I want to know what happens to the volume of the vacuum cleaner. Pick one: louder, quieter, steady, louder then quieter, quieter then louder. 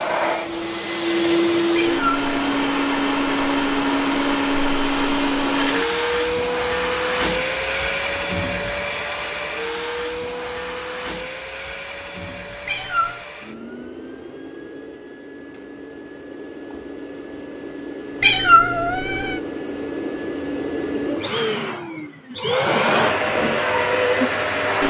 quieter then louder.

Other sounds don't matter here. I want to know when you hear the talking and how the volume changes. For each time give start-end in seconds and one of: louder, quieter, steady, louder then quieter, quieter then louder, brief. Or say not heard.
not heard.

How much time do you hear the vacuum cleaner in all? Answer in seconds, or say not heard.
25 s.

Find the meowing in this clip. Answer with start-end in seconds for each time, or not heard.
1.8-2.5, 12.7-13.2, 18.2-19.4.